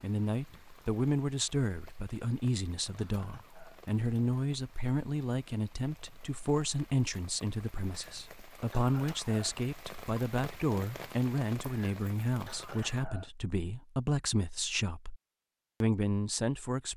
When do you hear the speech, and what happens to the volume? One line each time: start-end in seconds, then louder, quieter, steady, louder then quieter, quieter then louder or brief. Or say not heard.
0.0-15.2 steady
15.8-16.9 brief.